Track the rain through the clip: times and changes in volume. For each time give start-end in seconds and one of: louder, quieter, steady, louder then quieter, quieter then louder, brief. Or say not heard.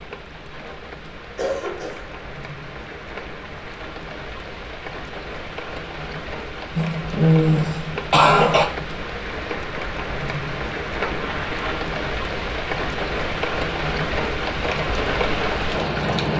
0.0-16.3 louder.